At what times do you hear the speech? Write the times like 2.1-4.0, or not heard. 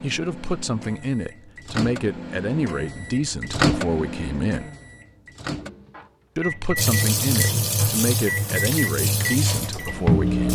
0.0-4.7, 6.3-10.4.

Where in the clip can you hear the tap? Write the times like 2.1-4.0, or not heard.
6.8-10.4.